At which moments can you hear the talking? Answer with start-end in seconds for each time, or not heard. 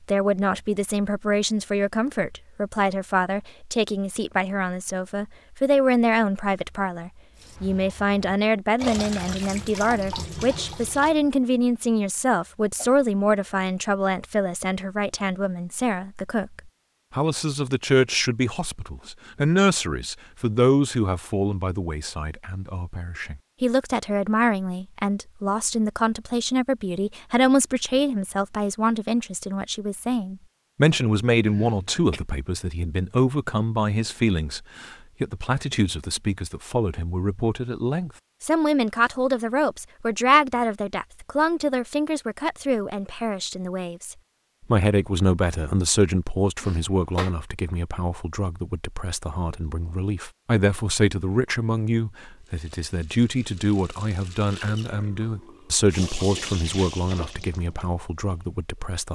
0.1-59.0.